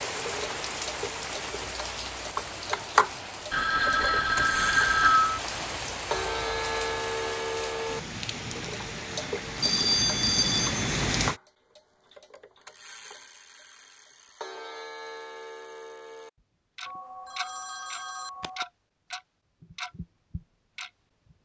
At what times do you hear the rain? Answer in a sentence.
The rain can be heard from 0.0 to 11.4 s.